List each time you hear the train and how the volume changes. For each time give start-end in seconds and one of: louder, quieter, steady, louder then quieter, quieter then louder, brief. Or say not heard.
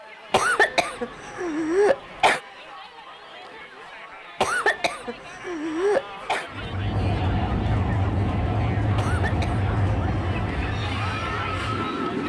6.5-12.2 quieter.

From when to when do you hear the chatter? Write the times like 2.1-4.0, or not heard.
0.0-12.2.